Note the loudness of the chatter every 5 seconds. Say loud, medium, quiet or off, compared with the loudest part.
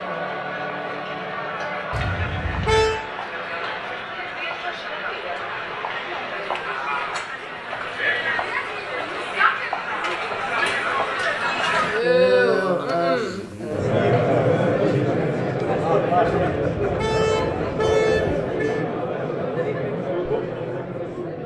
medium, medium, loud, loud, medium.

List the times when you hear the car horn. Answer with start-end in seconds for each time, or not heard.
1.9-3.0, 16.2-18.9.